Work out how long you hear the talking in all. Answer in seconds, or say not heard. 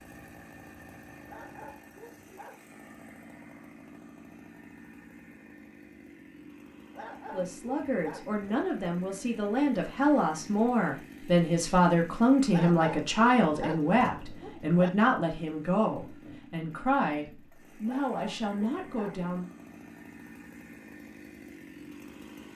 12 s.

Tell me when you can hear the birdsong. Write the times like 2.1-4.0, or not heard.
not heard.